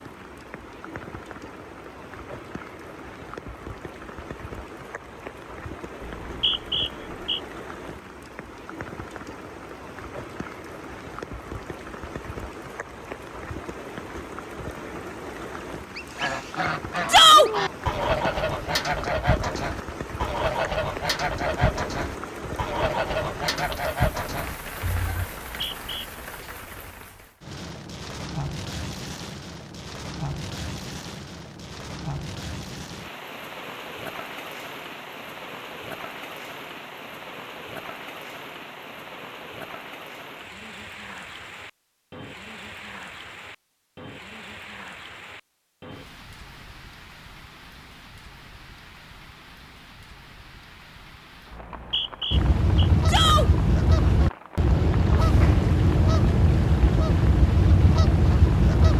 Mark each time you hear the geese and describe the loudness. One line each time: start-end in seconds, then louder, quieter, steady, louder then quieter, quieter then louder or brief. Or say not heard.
15.9-25.3 steady
52.3-58.9 steady.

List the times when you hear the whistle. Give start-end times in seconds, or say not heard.
6.0-7.4, 25.4-26.1, 51.5-52.9.